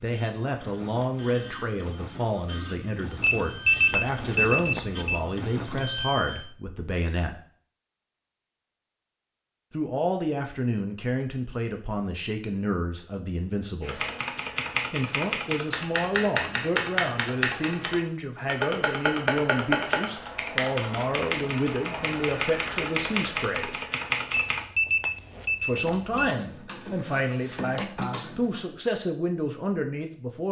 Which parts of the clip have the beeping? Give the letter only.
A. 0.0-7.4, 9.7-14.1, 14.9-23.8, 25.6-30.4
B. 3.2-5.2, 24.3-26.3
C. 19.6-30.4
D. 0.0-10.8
B.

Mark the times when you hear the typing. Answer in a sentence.
You can hear the typing from 13.8 to 24.6 s.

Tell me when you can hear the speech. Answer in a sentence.
The speech can be heard from 0.0 to 7.4 s, from 9.7 to 14.1 s, from 14.9 to 23.8 s and from 25.6 to 30.4 s.